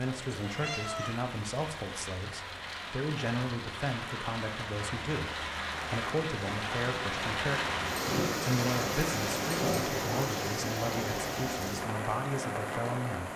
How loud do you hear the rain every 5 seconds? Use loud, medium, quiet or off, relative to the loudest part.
medium, loud, loud.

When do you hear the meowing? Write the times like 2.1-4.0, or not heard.
0.4-1.2.